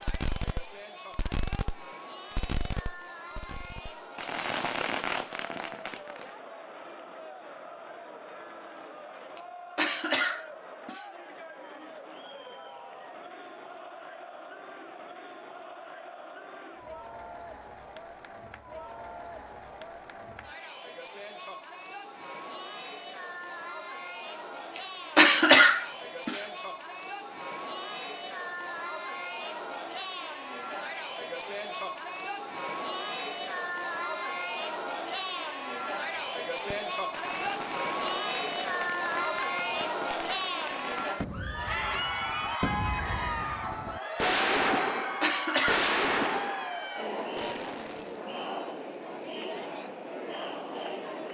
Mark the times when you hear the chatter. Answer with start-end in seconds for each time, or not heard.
0.0-51.2.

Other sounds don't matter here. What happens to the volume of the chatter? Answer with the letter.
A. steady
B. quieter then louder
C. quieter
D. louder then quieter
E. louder
E.